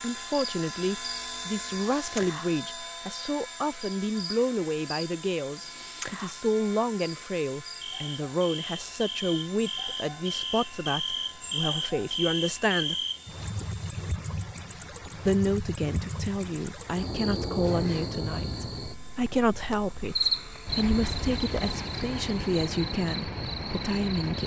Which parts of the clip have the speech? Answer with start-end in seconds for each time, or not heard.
0.0-12.9, 15.2-24.4.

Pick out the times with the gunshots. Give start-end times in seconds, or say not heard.
not heard.